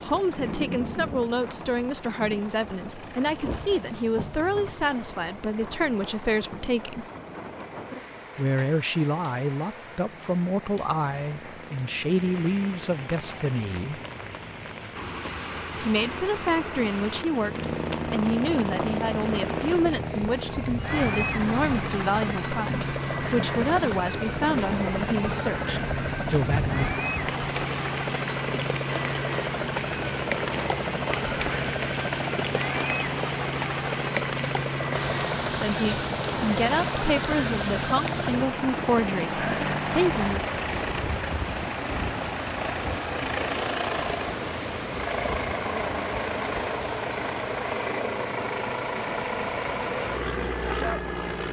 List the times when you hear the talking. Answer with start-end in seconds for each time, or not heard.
0.0-7.0, 8.3-14.0, 15.8-26.8, 35.5-40.4.